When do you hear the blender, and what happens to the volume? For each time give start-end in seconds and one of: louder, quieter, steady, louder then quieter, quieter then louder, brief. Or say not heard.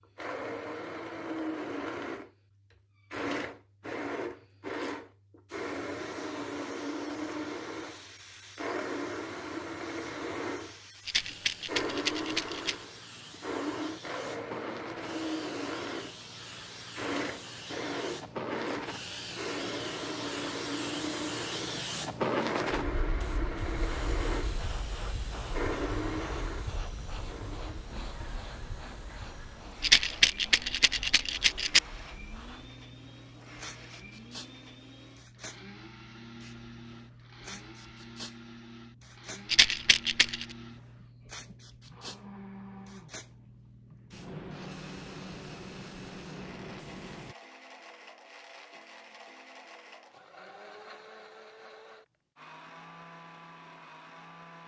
0.0-54.6 quieter.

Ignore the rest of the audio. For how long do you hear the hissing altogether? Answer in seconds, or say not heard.
42 s.